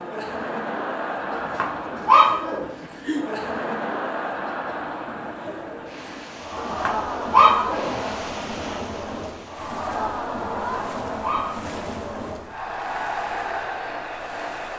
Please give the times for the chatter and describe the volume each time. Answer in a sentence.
You can hear the chatter from 0.0 to 14.7 s, at a steady volume.